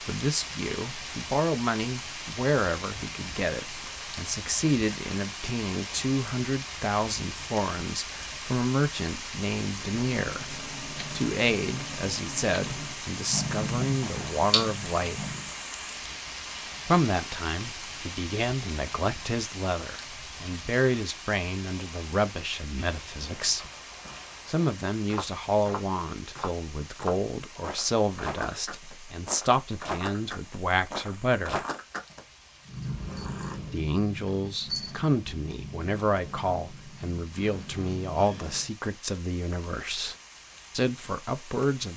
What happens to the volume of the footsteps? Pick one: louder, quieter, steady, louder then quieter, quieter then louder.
louder.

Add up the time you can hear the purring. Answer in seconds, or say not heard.
12 s.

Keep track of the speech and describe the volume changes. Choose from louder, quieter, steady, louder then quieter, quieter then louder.
steady.